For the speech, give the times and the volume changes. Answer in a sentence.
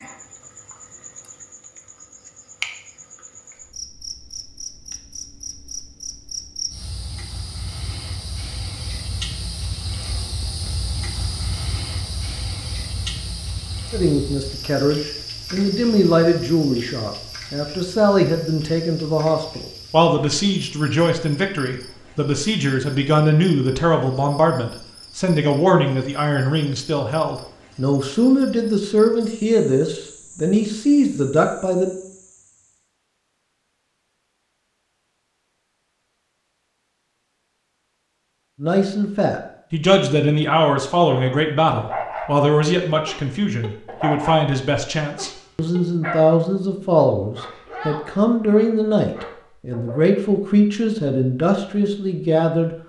The speech can be heard from 13.9 to 31.9 s, at a steady volume; and from 38.6 to 52.8 s, at a steady volume.